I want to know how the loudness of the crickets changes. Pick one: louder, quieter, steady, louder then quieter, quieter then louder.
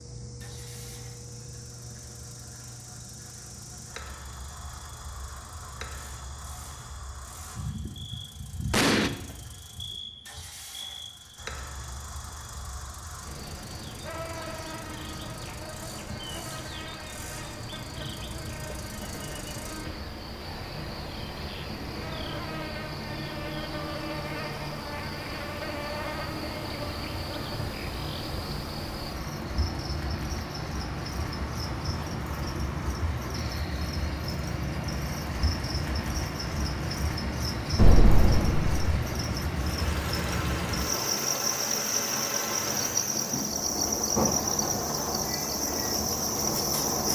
louder.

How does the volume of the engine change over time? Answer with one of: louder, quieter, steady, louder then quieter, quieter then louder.
louder.